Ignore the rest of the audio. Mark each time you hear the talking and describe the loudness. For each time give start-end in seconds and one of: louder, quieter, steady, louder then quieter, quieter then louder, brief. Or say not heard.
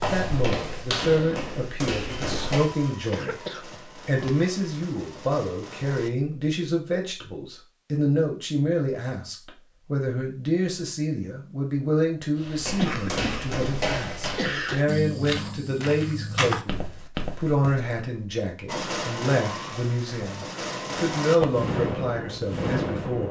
0.0-23.2 steady.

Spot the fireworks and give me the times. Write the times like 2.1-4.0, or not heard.
0.0-6.1, 18.6-23.2.